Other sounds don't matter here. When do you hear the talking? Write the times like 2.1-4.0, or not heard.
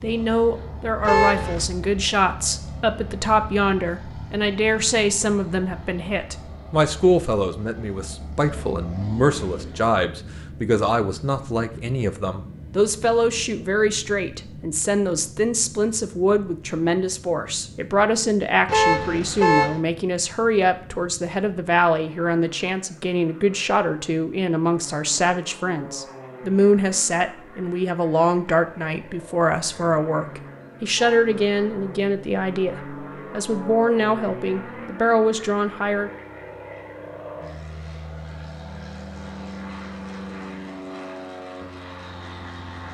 0.0-36.1.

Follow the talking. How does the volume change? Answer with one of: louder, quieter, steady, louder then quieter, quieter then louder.
steady.